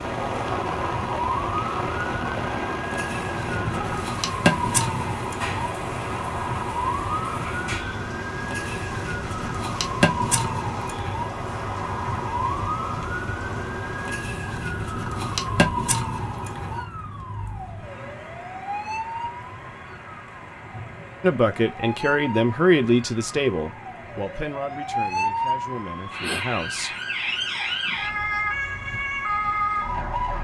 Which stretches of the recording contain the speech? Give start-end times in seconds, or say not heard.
21.2-26.9.